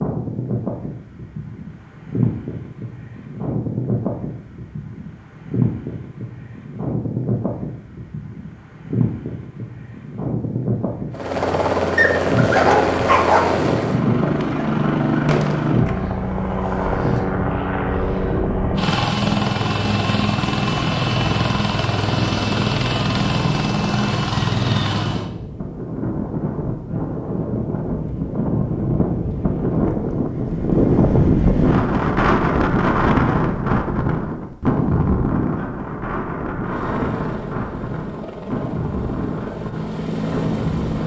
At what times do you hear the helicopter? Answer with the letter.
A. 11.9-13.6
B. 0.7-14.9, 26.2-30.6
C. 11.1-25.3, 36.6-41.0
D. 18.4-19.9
C.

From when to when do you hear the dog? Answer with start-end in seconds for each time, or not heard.
11.9-13.6.